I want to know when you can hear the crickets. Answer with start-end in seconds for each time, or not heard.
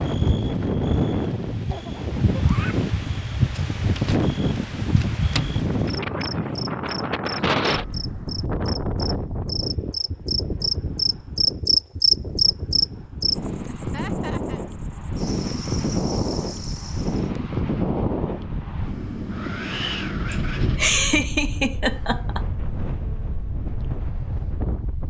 0.0-17.3.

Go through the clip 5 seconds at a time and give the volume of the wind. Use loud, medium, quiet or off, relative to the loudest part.
loud, loud, medium, loud, medium.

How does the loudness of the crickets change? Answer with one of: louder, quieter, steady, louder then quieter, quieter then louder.
louder then quieter.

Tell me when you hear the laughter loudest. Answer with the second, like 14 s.
21 s.